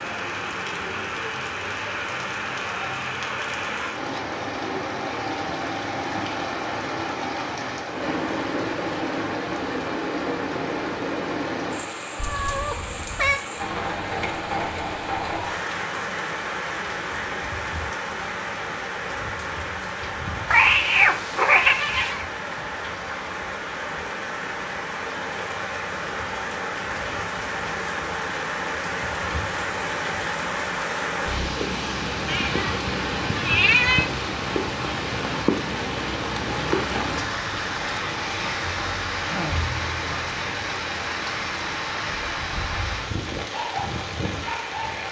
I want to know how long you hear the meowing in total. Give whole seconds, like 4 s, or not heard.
5 s.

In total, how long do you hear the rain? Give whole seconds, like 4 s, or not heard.
45 s.